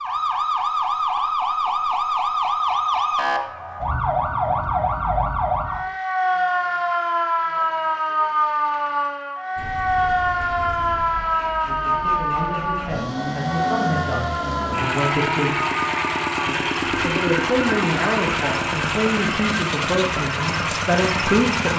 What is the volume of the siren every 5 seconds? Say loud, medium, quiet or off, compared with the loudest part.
loud, loud, loud, medium, medium.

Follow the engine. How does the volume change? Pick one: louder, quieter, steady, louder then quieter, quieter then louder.
louder.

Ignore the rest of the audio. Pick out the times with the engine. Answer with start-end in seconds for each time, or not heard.
9.6-21.7.